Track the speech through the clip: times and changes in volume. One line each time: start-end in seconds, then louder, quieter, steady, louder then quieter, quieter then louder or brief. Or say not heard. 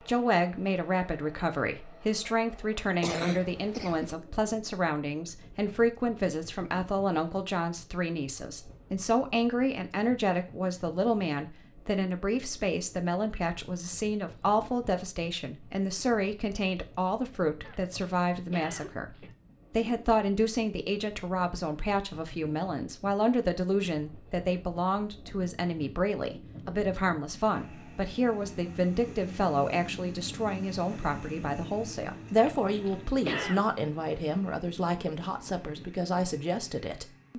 0.1-37.3 steady.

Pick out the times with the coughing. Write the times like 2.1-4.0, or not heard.
3.0-4.2, 17.6-19.4, 32.4-33.6.